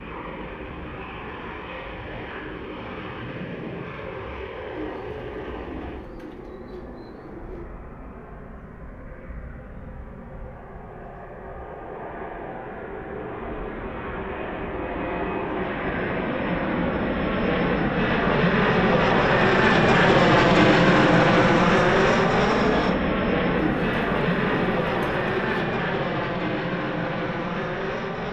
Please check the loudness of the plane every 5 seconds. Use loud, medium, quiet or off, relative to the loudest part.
quiet, quiet, quiet, loud, loud, medium.